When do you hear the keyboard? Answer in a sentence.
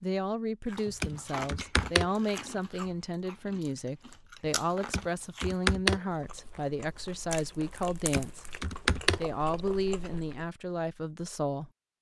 You can hear the keyboard from 1.0 to 2.0 s, from 4.9 to 6.0 s and from 8.1 to 9.2 s.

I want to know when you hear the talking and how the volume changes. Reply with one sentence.
The talking can be heard from 0.0 to 8.6 s, at a steady volume; and briefly from 9.2 to 11.7 s.